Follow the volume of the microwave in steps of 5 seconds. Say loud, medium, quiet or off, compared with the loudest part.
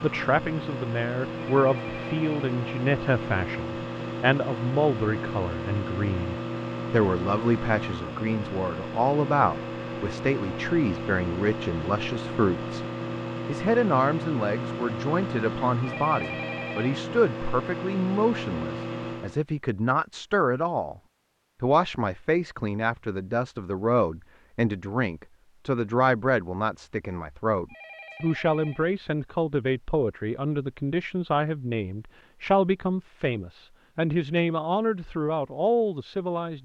loud, loud, loud, loud, off, off, off, off.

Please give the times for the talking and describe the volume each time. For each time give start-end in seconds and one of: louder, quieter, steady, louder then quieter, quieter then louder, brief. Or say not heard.
0.0-12.8 steady
13.4-21.0 steady
21.6-36.6 steady.